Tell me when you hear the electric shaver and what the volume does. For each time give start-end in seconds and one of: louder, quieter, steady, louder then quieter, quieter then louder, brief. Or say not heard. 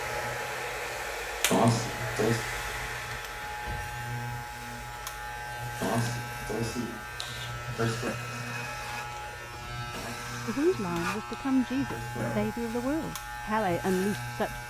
0.0-14.6 steady.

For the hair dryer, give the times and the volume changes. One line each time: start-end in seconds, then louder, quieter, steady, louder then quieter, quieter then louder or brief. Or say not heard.
0.0-9.5 quieter.